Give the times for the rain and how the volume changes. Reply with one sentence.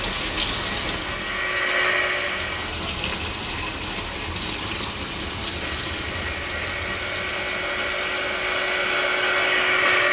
You can hear the rain from 0.0 to 9.8 s, getting quieter.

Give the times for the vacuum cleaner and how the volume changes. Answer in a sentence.
The vacuum cleaner can be heard briefly from 0.2 to 2.9 s; and from 5.7 to 10.0 s, getting louder.